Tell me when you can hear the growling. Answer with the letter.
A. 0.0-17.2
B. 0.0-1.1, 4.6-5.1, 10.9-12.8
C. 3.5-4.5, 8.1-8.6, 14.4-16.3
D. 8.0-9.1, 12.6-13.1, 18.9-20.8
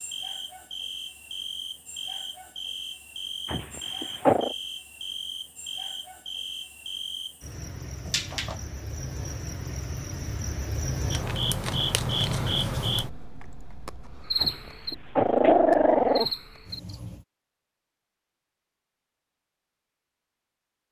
C.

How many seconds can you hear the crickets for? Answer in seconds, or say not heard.
17 s.